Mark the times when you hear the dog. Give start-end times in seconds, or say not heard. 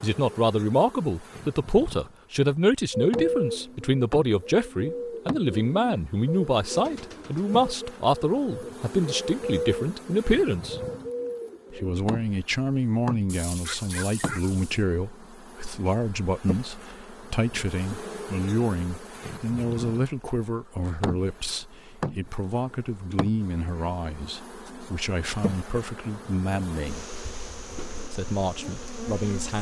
13.2-14.8.